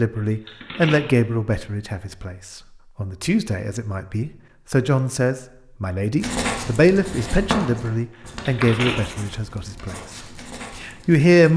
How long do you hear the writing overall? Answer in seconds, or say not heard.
5 s.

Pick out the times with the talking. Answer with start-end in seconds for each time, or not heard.
0.0-9.9, 10.8-11.5.